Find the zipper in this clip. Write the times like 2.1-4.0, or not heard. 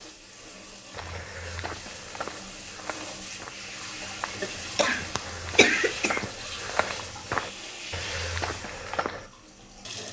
not heard.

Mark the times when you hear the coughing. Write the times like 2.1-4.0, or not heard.
4.4-6.2.